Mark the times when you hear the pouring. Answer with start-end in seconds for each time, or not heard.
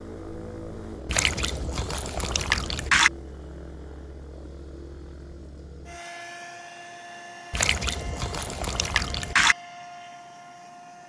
1.1-3.1, 7.5-9.6.